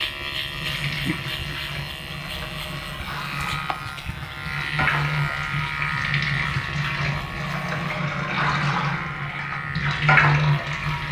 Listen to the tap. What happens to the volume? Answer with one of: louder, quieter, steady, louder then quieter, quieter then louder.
louder.